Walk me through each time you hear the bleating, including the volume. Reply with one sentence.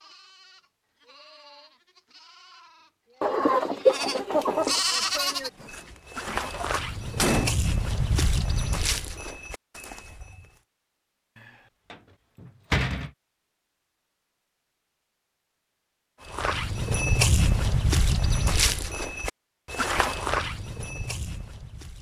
You can hear the bleating from 0.0 to 5.7 s, getting louder.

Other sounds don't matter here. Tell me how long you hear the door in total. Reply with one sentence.
You can hear the door for 3 seconds altogether.